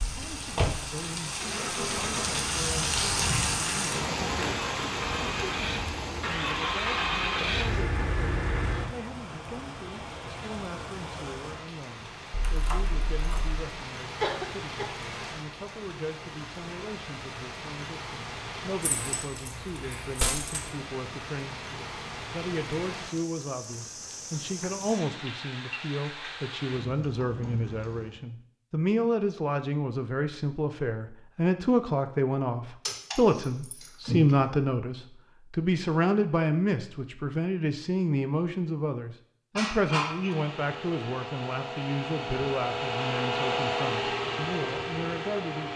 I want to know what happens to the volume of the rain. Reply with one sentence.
The loudness of the rain goes down.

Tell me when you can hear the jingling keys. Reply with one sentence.
The jingling keys can be heard from 12.3 to 13.6 s, from 18.8 to 20.7 s and from 32.9 to 34.5 s.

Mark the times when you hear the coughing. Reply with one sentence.
The coughing can be heard from 14.2 to 14.9 s and from 39.5 to 40.4 s.